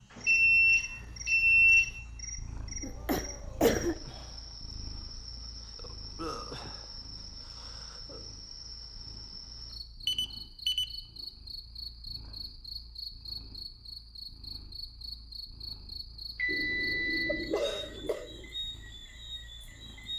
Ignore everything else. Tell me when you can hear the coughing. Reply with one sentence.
You can hear the coughing from 2.8 to 4.0 s and from 16.4 to 18.5 s.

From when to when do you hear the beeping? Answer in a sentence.
The beeping can be heard from 0.2 to 1.9 s, from 10.1 to 10.8 s and from 16.4 to 17.5 s.